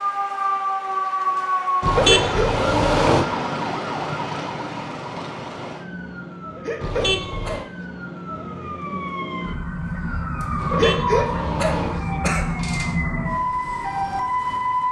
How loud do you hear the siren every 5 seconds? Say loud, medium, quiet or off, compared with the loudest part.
loud, medium, loud.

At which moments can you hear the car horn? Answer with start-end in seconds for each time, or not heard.
1.8-3.2, 6.8-7.7, 10.6-11.9.